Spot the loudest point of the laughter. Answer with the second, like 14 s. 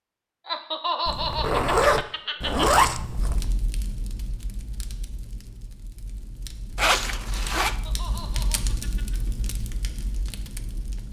1 s.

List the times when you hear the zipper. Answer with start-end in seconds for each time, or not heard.
1.1-3.5, 6.8-7.8.